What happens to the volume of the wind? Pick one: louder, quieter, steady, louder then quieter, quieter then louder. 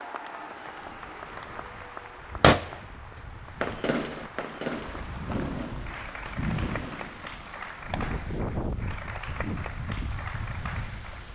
louder.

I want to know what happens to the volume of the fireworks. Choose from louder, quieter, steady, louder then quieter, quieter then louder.
quieter.